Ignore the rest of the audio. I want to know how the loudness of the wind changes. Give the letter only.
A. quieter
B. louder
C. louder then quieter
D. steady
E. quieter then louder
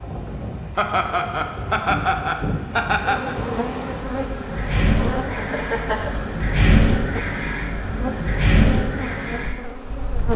B.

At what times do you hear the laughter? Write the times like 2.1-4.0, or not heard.
0.8-3.4, 5.3-6.2.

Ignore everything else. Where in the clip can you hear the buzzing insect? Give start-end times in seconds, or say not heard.
3.0-10.3.